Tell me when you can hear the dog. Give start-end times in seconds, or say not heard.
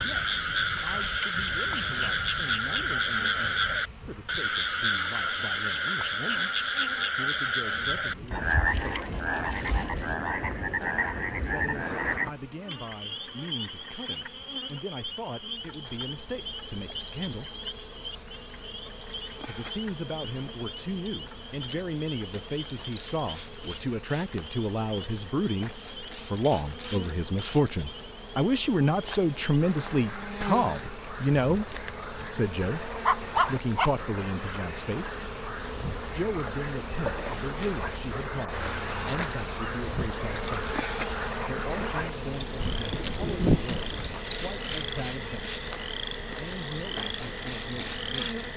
33.0-34.0.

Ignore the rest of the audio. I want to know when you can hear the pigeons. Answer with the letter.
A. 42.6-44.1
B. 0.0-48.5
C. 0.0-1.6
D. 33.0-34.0
A.